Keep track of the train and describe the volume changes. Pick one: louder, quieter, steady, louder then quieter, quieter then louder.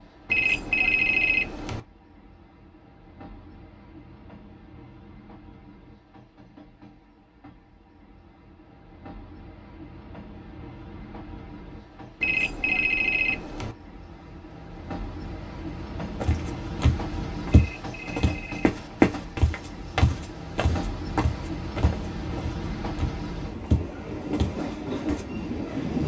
louder.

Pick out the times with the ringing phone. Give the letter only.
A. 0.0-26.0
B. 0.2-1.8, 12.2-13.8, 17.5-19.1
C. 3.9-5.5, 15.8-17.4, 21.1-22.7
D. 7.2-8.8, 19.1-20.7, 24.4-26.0
B.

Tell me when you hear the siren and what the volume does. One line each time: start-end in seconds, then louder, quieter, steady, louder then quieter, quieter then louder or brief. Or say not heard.
not heard.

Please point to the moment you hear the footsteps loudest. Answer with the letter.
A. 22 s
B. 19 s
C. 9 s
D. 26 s
B.